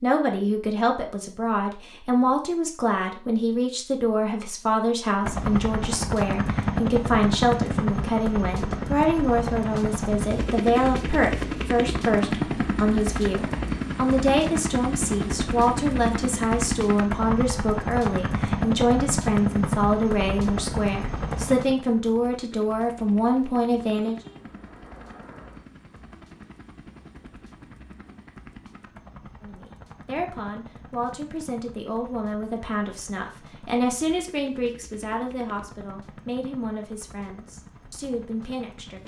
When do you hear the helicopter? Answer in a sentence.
You can hear the helicopter from 5.2 to 39.0 s.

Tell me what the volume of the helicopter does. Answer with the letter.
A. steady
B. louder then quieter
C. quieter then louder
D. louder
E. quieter
E.